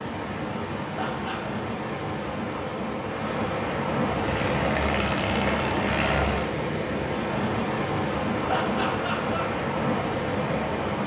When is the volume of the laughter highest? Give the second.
9 s.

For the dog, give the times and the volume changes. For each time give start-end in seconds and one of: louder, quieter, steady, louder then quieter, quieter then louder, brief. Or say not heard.
not heard.